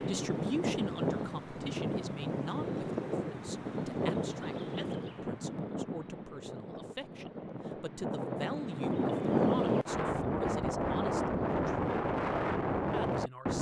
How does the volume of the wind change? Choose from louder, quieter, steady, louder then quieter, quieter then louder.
quieter then louder.